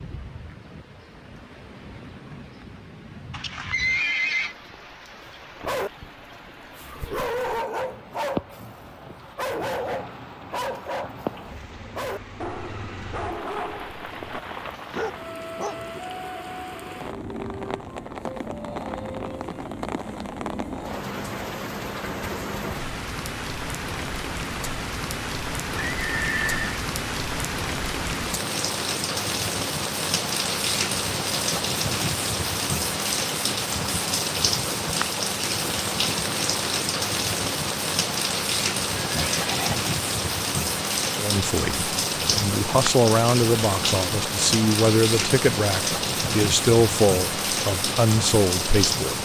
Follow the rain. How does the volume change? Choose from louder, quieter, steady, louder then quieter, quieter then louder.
louder.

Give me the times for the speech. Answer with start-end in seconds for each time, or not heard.
41.1-49.2.